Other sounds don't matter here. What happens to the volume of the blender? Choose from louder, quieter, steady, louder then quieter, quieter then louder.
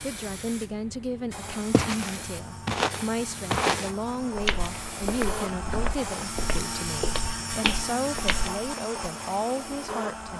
louder.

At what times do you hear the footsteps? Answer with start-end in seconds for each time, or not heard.
1.7-8.7.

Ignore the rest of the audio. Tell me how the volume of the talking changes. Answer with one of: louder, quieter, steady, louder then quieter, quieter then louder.
steady.